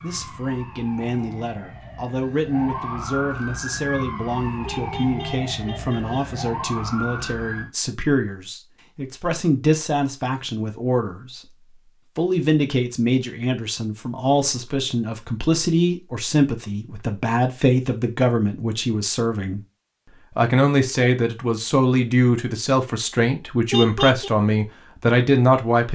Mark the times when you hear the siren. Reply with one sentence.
The siren can be heard from 0.0 to 7.7 s.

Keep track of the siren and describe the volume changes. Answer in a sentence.
The loudness of the siren goes up.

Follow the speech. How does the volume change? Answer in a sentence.
The loudness of the speech goes up.